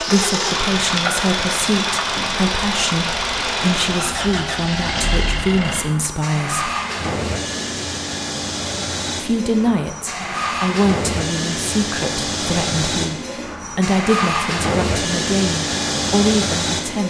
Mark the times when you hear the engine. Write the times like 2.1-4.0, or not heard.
0.0-17.0.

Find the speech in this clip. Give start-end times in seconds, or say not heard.
0.0-6.7, 9.2-17.0.